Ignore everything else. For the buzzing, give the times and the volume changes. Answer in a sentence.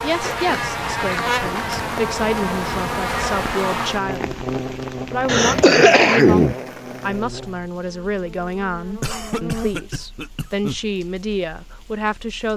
The buzzing can be heard from 0.0 to 9.9 s, getting quieter.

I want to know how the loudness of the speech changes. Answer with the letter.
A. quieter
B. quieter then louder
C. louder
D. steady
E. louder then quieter
D.